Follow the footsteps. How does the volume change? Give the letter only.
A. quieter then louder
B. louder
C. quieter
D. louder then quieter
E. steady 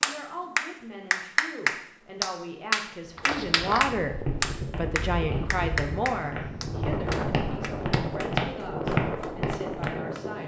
A.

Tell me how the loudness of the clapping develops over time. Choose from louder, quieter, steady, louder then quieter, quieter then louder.
quieter.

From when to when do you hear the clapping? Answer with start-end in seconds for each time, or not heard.
0.0-10.4.